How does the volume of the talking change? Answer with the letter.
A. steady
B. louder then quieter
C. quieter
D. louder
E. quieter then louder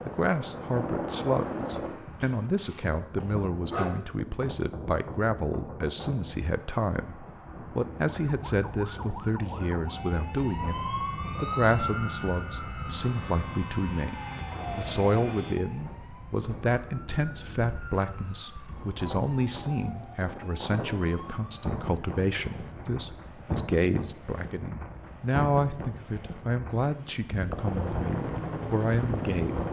A.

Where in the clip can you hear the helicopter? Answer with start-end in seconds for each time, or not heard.
0.0-1.9, 27.6-29.6.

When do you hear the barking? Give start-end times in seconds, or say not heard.
2.1-4.0.